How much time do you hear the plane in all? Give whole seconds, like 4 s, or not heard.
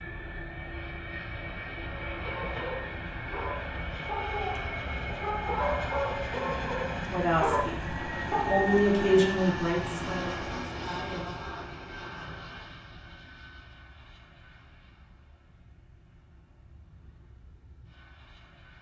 19 s.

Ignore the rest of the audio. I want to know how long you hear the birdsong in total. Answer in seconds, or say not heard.
not heard.